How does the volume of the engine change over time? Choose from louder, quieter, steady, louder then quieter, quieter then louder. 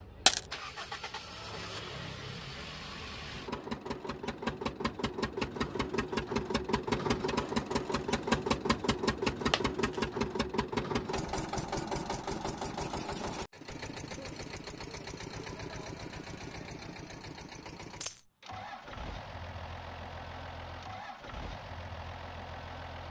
louder then quieter.